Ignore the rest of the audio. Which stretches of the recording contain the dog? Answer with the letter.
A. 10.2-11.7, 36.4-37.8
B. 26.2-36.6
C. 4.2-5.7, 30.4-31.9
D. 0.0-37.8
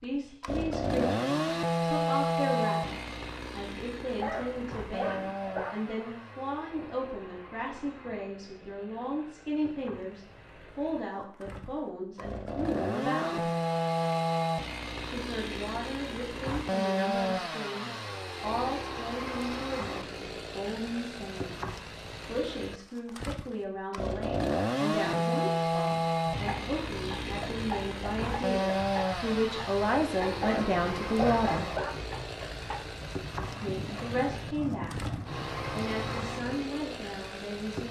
C.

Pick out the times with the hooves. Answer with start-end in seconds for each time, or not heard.
26.2-36.6.